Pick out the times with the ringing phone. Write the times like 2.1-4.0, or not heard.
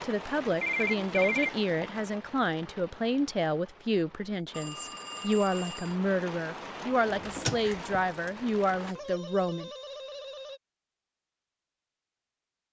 0.6-1.6, 4.5-6.0, 8.9-10.6.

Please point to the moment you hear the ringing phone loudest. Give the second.
1 s.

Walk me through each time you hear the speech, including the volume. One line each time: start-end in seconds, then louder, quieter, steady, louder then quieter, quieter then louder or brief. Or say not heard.
0.0-9.7 steady.